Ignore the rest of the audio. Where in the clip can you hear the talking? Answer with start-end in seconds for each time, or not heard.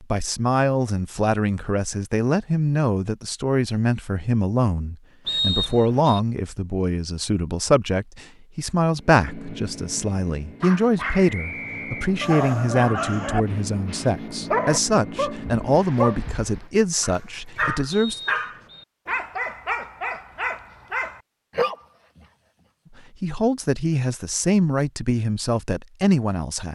0.0-18.2, 23.2-26.6.